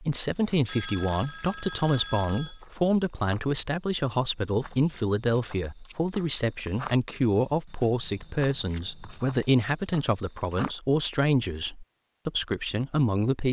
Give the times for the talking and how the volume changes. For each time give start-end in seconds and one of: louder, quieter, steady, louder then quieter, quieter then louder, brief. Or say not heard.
0.0-13.4 steady.